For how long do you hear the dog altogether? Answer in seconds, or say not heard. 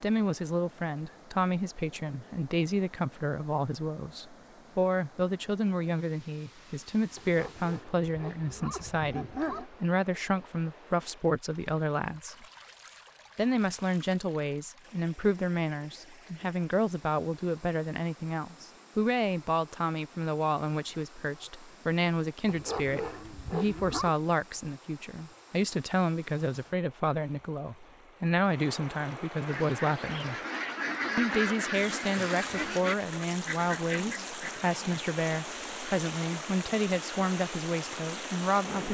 4 s.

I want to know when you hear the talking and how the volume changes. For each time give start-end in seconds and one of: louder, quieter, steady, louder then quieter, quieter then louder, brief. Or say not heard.
0.0-12.4 steady
13.3-30.4 steady
31.1-38.9 steady.